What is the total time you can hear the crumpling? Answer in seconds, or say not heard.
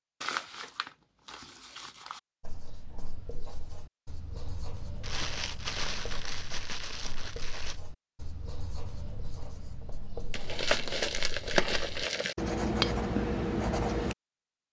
7 s.